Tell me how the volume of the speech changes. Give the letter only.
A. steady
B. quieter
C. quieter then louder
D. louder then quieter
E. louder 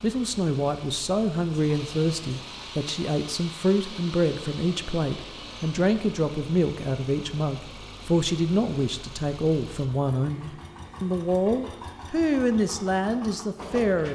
A.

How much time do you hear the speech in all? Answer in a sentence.
You can hear the speech for 14 seconds altogether.